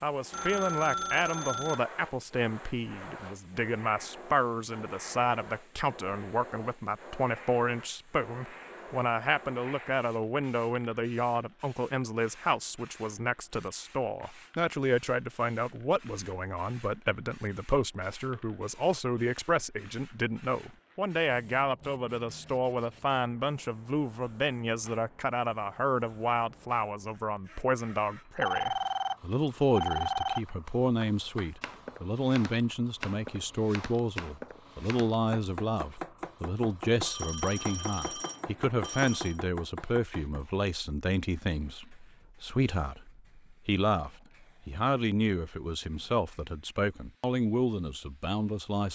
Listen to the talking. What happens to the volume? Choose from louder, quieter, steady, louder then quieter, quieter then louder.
steady.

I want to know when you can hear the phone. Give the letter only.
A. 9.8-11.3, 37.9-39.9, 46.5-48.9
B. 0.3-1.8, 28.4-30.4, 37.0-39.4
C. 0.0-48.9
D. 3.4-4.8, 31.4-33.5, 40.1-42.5
B.